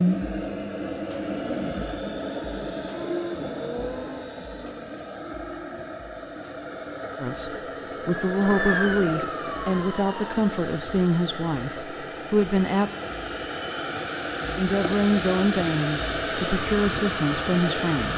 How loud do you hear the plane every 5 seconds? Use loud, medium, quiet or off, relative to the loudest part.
loud, medium, medium, loud.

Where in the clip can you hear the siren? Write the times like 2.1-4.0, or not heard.
8.1-10.3.